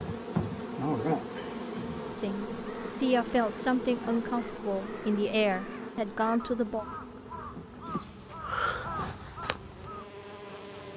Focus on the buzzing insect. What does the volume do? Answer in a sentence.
The loudness of the buzzing insect goes down.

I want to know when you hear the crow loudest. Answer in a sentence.
The volume of the crow peaks at 9 seconds.